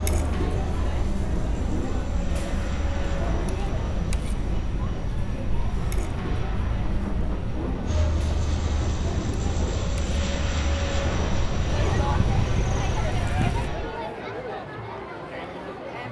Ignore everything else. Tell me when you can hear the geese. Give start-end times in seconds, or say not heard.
11.8-13.7.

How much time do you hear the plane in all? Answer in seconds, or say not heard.
14 s.